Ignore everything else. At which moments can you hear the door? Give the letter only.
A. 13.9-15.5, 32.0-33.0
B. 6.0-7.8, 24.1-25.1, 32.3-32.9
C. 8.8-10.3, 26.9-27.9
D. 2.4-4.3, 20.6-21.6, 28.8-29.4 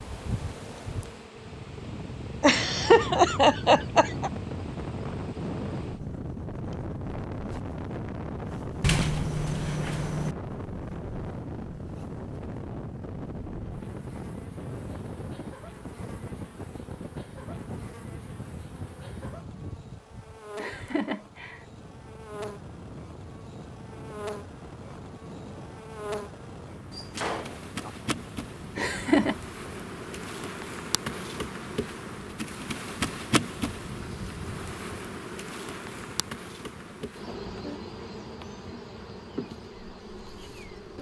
C.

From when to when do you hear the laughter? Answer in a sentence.
You can hear the laughter from 2.4 to 4.3 s, from 20.6 to 21.6 s and from 28.8 to 29.4 s.